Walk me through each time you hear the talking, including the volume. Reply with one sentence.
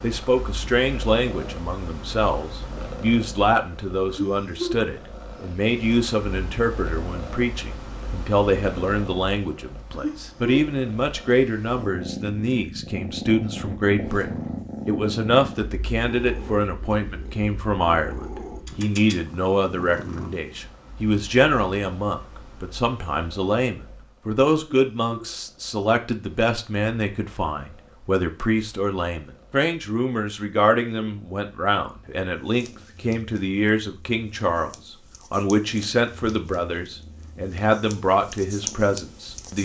You can hear the talking from 0.0 to 39.5 s, at a steady volume.